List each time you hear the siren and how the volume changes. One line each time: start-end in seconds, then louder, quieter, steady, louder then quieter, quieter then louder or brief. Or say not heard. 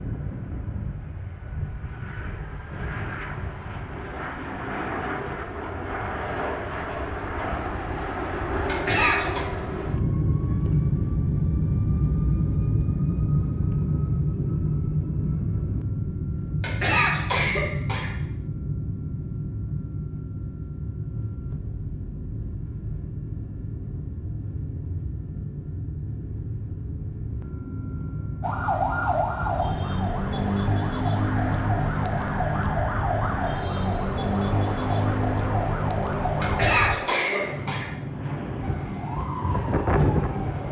28.4-37.0 steady
38.6-40.6 brief.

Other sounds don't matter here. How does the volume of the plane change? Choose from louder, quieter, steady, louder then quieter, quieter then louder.
louder then quieter.